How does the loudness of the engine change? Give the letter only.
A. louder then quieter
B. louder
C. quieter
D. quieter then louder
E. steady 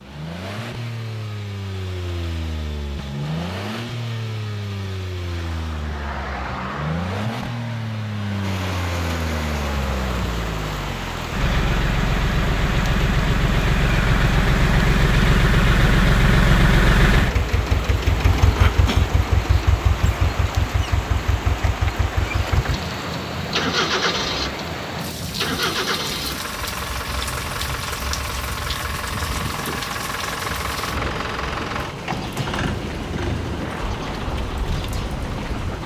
A.